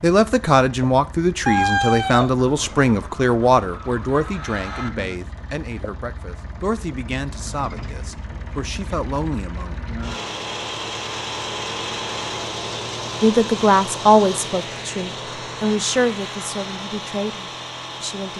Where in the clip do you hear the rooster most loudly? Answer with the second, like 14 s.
2 s.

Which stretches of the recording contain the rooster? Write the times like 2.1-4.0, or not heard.
1.4-4.9.